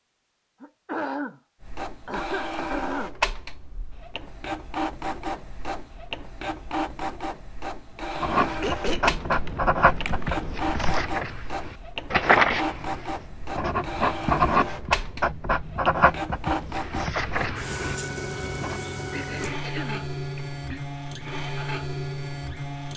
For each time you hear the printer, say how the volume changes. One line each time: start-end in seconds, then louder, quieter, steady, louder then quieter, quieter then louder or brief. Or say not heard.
1.6-22.9 steady.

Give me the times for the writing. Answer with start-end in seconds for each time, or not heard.
8.2-18.8.